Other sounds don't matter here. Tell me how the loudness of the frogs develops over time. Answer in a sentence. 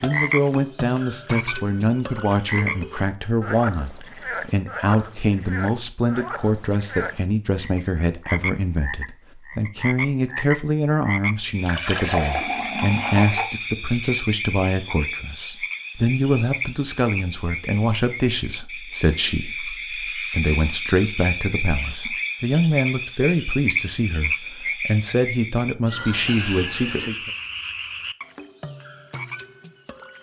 The volume of the frogs stays about the same.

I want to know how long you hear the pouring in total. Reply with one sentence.
You can hear the pouring for 3 seconds altogether.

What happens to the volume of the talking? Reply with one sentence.
The loudness of the talking stays about the same.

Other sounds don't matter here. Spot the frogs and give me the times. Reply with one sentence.
The frogs can be heard from 0.0 to 30.1 s.